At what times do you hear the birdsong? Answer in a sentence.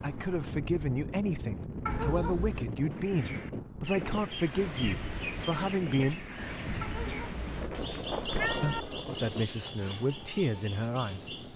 You can hear the birdsong from 3.0 to 11.5 s.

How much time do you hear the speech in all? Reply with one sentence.
The speech can be heard for 9 seconds in total.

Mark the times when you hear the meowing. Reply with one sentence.
The meowing can be heard from 1.9 to 2.7 s and from 6.8 to 8.8 s.